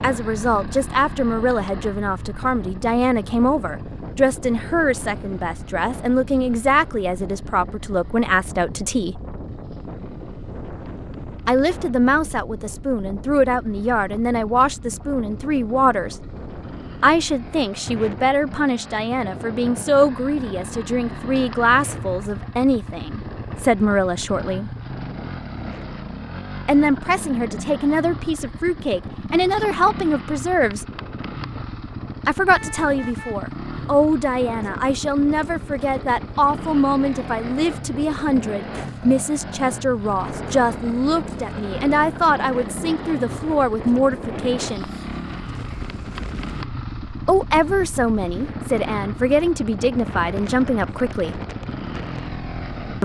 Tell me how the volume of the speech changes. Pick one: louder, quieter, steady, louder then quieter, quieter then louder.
steady.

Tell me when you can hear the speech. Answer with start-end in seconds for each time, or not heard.
0.0-9.2, 11.4-16.1, 17.0-24.8, 26.6-30.9, 32.2-44.9, 47.2-51.4.